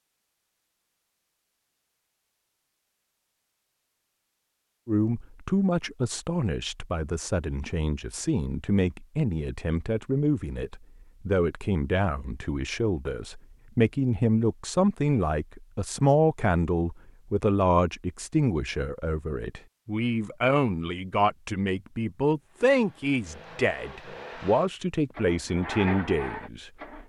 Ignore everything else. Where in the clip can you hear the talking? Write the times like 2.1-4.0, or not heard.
4.8-27.0.